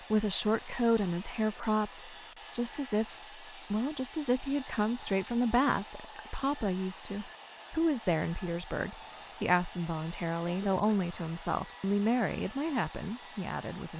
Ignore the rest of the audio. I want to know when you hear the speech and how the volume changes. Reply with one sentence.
The speech can be heard from 0.1 to 13.9 s, at a steady volume.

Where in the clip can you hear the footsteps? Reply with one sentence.
You can't hear the footsteps here.